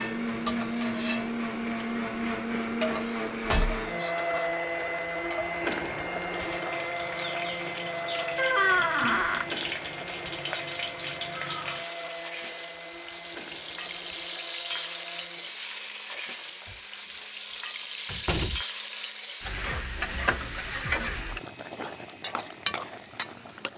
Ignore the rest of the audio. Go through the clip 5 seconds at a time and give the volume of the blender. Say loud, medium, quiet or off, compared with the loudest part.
loud, loud, medium, quiet, quiet.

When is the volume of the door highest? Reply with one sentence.
The loudest moment of the door is at 9 seconds.